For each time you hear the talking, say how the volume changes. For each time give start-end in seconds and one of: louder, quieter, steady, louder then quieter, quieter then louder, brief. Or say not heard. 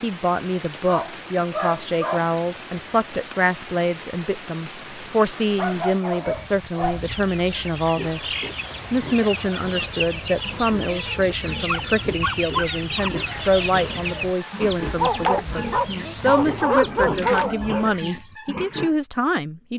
0.0-19.7 steady.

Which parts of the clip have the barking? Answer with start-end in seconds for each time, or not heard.
0.8-2.3, 5.3-7.8, 11.7-13.1, 14.9-17.9.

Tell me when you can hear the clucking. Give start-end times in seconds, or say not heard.
7.0-18.4.